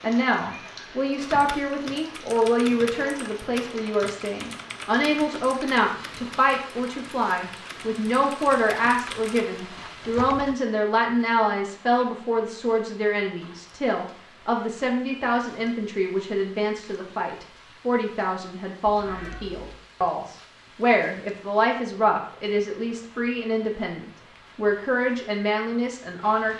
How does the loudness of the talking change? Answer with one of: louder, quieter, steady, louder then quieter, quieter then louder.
steady.